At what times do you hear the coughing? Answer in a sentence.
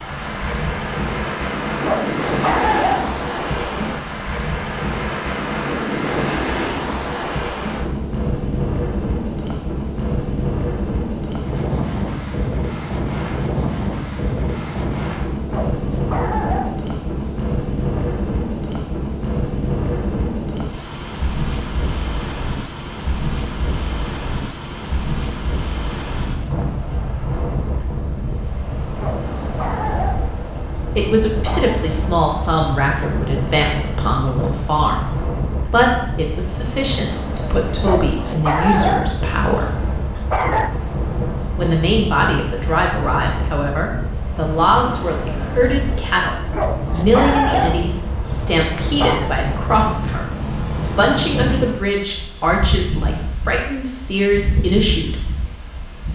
The coughing can't be heard in this clip.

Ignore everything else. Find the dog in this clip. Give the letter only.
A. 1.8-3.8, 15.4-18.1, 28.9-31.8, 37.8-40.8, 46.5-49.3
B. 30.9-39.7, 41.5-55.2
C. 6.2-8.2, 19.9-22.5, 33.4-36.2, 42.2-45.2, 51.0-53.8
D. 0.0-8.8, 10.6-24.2
A.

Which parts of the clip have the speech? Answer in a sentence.
You can hear the speech from 30.9 to 39.7 s and from 41.5 to 55.2 s.